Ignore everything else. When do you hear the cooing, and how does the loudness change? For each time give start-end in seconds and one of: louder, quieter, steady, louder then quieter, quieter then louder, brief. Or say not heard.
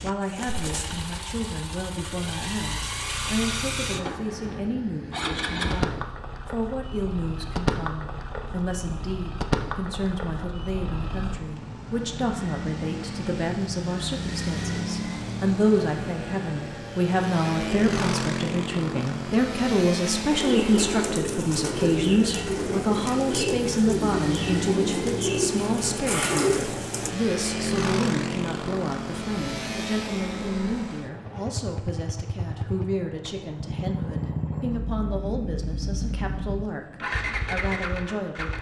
20.2-27.1 steady.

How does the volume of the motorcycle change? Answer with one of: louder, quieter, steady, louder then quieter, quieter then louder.
steady.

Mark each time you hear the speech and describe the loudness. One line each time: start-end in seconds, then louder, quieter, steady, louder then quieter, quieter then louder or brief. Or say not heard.
0.0-38.5 louder then quieter.